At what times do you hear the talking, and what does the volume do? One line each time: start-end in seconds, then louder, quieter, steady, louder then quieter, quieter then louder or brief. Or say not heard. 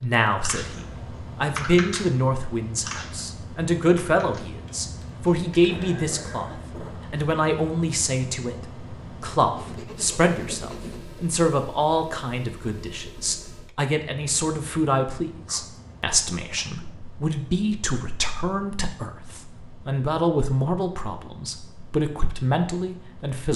0.0-23.5 steady.